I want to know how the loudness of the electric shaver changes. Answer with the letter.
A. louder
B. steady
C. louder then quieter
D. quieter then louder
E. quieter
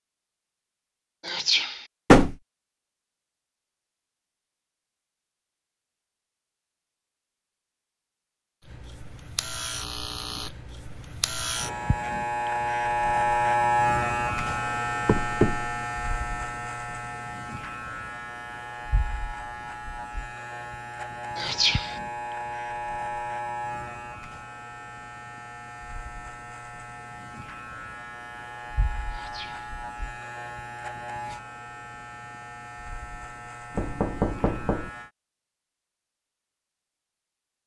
E.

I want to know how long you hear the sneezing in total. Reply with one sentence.
You can hear the sneezing for 2 seconds altogether.